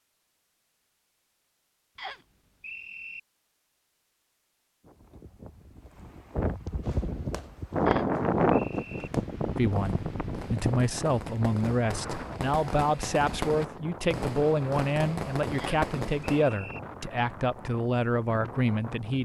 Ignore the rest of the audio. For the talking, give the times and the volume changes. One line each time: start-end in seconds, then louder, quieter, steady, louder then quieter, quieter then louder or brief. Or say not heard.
9.6-19.2 steady.